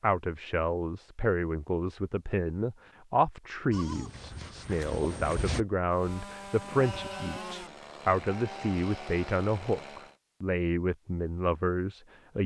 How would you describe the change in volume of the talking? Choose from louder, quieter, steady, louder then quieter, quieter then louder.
steady.